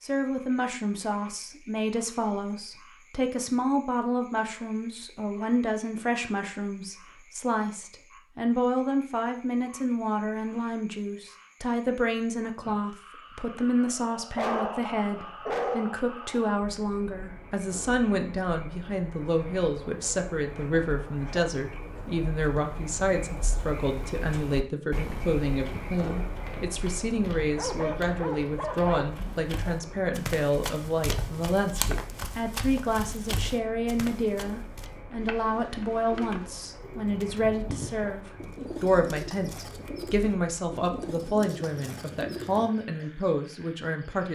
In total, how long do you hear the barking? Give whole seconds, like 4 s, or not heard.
3 s.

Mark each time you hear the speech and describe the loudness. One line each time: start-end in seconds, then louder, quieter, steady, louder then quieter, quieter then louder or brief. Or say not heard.
0.0-44.3 steady.